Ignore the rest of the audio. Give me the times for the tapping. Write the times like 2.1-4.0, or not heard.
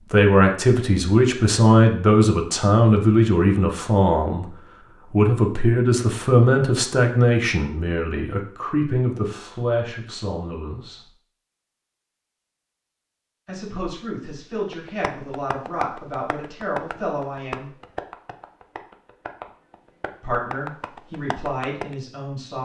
14.7-21.9.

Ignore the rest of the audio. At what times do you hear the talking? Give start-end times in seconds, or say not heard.
0.0-11.1, 13.4-17.8, 20.2-22.5.